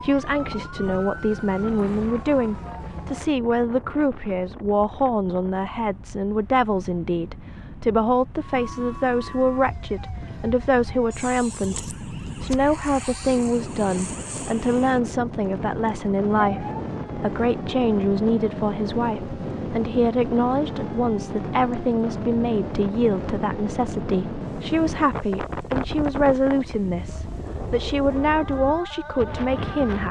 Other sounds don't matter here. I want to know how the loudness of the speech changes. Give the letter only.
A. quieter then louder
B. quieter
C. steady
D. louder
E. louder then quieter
C.